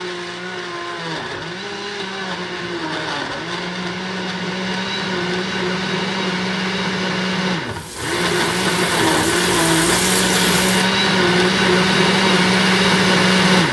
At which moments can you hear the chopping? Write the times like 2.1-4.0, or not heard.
not heard.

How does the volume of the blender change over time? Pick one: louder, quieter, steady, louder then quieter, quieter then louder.
louder.